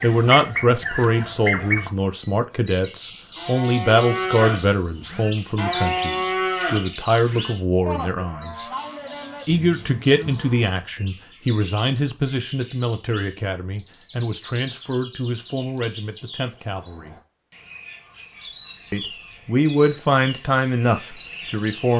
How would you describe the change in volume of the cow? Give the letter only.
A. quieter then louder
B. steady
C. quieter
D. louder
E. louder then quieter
C.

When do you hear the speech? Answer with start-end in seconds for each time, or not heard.
0.0-8.7, 9.4-17.1, 18.9-21.9.